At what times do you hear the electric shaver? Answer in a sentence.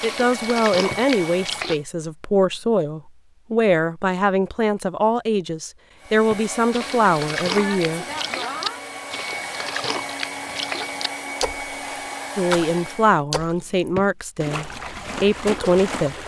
You can't hear the electric shaver here.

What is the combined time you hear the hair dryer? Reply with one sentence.
You can hear the hair dryer for 9 seconds altogether.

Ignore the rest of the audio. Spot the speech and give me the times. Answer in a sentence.
The speech can be heard from 0.0 to 8.1 s and from 12.3 to 16.1 s.